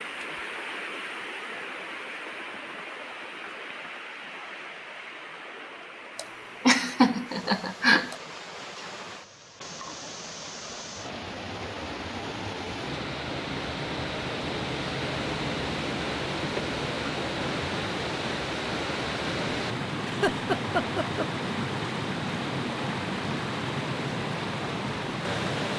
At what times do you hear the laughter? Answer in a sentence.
The laughter can be heard from 6.2 to 8.2 s and from 20.1 to 21.2 s.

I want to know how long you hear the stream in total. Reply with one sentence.
The stream can be heard for 26 seconds in total.